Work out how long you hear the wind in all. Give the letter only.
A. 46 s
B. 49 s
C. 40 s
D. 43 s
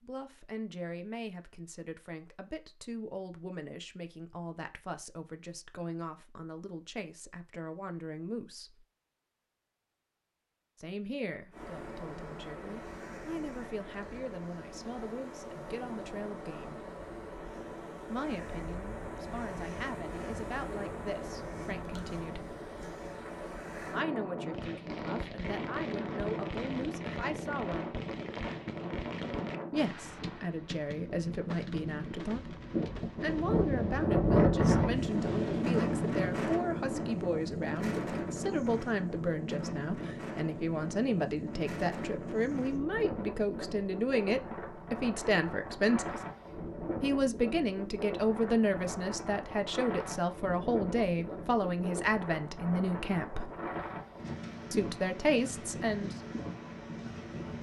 A.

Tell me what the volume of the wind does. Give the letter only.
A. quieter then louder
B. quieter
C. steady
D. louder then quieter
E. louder
D.